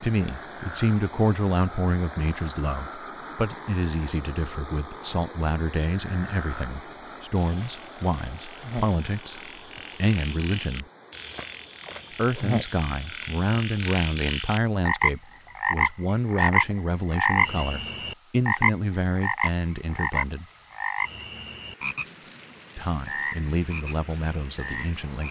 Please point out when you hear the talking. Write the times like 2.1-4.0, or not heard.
0.0-10.8, 12.2-20.4, 22.8-25.2.